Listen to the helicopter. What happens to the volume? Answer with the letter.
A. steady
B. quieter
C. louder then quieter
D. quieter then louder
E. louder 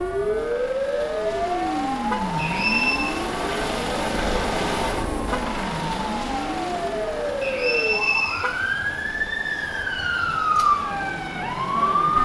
C.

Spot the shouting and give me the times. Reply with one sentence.
The shouting can't be heard in this clip.